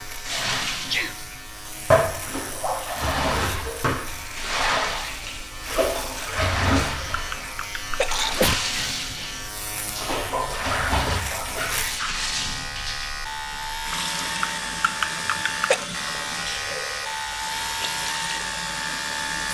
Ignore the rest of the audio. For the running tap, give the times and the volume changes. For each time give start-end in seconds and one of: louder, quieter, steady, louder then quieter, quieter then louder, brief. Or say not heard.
0.0-19.4 quieter.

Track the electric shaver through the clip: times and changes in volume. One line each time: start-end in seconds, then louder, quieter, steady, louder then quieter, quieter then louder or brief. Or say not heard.
0.0-19.4 louder.